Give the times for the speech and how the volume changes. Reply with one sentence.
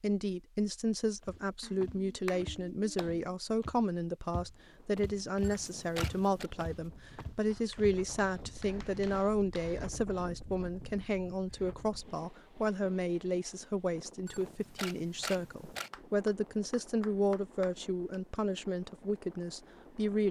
The speech can be heard from 0.0 to 20.2 s, at a steady volume.